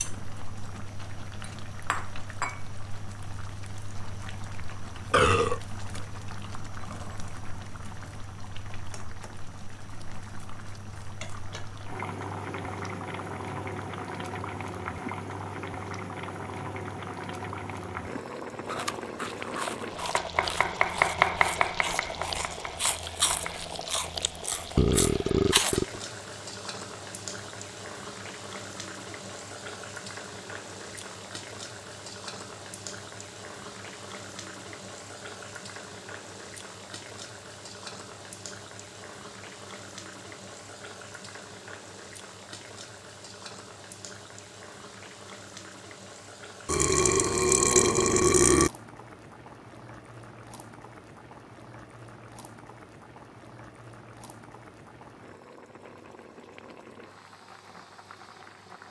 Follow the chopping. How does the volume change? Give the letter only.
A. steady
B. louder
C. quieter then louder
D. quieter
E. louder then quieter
E.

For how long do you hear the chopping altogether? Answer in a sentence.
You can hear the chopping for 5 seconds altogether.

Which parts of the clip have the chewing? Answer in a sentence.
The chewing can be heard from 18.6 to 25.8 s.